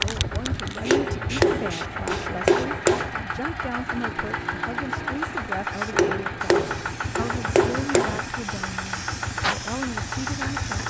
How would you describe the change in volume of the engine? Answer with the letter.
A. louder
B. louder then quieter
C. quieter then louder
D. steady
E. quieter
D.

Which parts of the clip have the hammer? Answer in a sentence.
The hammer can be heard from 0.8 to 3.1 s and from 5.9 to 8.2 s.